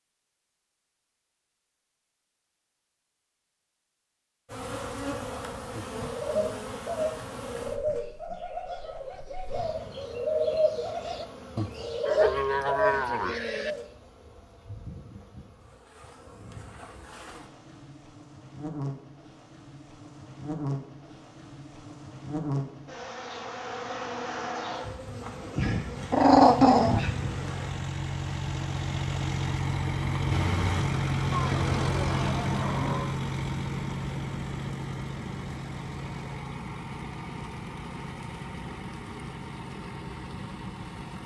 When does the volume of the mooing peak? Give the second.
13 s.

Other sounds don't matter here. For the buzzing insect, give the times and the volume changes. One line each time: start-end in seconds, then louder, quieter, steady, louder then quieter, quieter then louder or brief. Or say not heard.
4.5-27.7 quieter then louder.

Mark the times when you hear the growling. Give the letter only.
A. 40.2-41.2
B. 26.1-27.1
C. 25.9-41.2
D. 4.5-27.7
B.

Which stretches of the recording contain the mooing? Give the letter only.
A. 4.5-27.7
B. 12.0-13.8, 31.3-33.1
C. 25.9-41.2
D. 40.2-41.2
B.